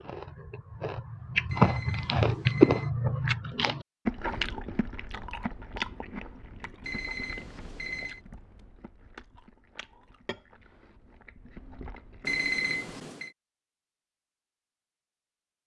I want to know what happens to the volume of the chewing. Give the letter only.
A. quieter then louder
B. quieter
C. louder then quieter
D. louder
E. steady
B.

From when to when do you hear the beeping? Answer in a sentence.
The beeping can be heard from 1.4 to 2.9 s, from 6.8 to 8.2 s and from 12.2 to 13.3 s.